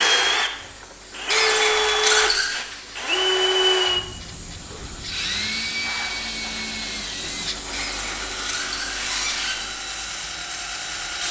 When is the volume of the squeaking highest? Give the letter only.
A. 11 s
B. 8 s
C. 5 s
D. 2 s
D.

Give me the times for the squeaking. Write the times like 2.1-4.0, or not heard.
1.2-2.6, 7.7-9.6.